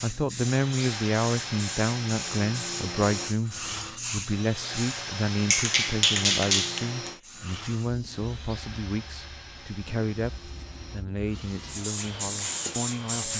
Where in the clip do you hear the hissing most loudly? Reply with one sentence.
The volume of the hissing peaks at 6 seconds.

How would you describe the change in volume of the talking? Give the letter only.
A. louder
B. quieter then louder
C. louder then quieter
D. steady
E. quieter
E.